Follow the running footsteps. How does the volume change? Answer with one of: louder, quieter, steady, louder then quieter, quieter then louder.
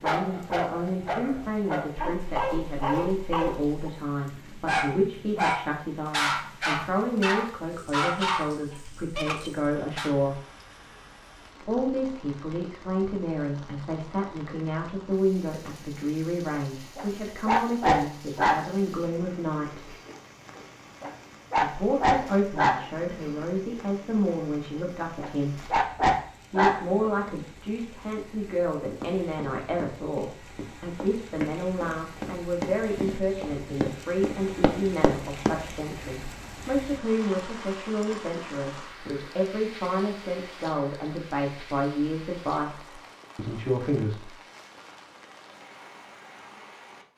louder.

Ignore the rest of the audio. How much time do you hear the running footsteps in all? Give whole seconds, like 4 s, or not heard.
7 s.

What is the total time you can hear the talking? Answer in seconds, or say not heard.
41 s.